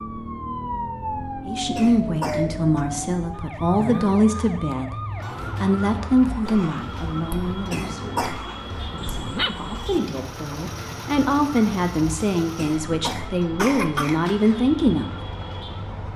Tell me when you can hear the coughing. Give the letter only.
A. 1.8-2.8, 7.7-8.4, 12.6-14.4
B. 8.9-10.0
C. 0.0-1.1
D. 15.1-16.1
A.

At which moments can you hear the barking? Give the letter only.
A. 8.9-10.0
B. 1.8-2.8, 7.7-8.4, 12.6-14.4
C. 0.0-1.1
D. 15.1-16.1
A.